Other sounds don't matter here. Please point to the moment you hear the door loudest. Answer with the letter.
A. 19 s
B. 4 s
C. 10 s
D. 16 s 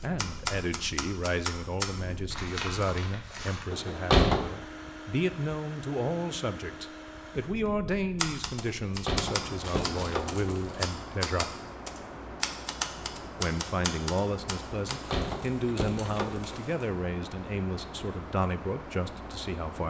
B.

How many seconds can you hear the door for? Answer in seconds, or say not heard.
4 s.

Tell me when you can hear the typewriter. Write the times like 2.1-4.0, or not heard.
0.0-1.9, 8.2-14.9.